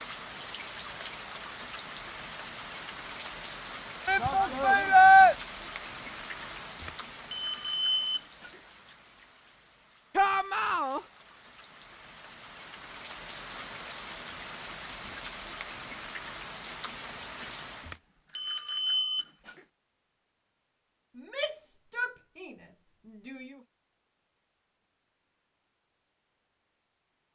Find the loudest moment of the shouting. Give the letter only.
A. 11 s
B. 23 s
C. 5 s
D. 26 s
C.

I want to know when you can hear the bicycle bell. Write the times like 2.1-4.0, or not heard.
6.8-8.5, 17.9-19.6.